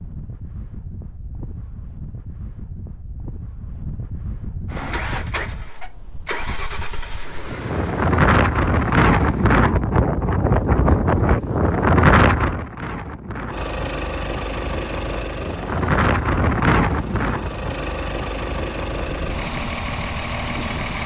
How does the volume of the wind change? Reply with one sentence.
The loudness of the wind goes up, then down.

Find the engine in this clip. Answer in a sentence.
The engine can be heard from 4.7 to 9.7 s and from 13.4 to 21.0 s.